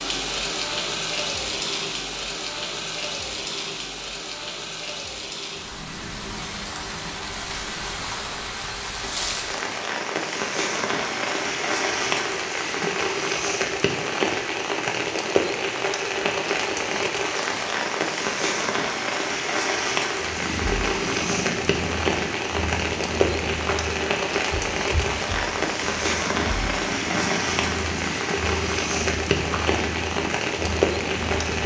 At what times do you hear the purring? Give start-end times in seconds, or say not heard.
20.1-31.6.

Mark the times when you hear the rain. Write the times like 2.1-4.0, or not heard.
0.0-31.6.